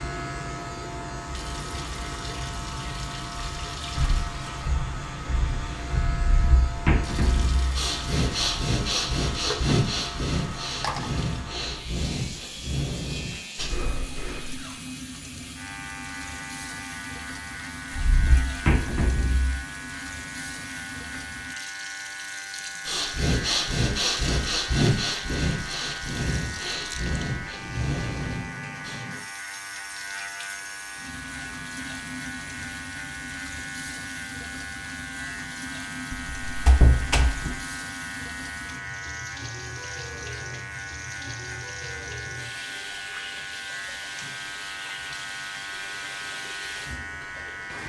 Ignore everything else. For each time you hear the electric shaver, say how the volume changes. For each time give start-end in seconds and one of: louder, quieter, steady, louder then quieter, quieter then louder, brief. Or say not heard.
0.0-47.8 steady.